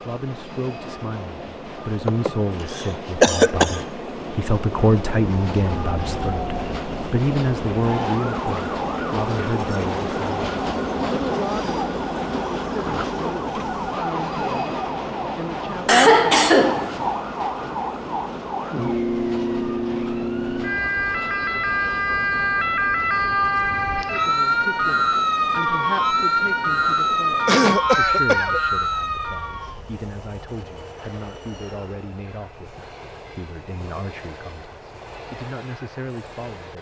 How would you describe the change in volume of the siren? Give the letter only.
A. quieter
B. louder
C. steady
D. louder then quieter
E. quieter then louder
B.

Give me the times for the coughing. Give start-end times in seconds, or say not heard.
2.0-3.9, 15.8-17.0, 27.4-28.6.